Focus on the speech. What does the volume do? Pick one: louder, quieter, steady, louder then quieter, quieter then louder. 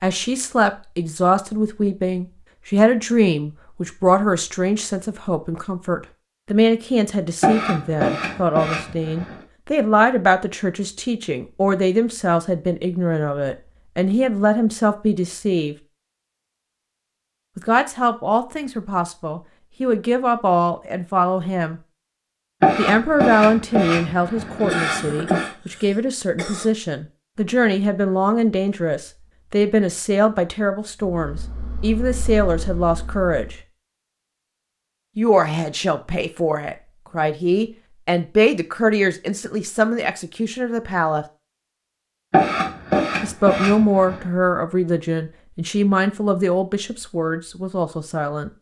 steady.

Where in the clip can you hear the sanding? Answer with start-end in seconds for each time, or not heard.
7.4-9.4, 22.6-25.5, 42.3-44.2.